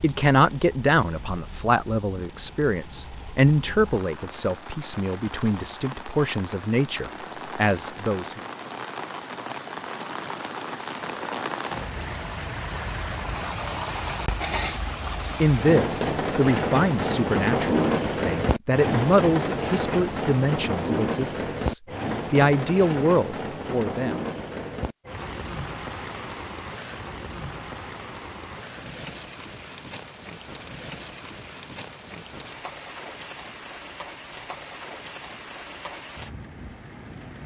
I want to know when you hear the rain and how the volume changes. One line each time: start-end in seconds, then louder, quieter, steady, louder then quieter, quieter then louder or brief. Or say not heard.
0.0-37.4 louder then quieter.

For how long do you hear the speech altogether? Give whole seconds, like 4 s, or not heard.
17 s.